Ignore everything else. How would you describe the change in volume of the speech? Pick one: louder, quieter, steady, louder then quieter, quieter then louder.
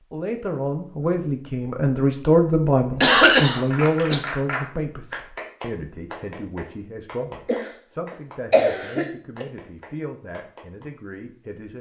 quieter.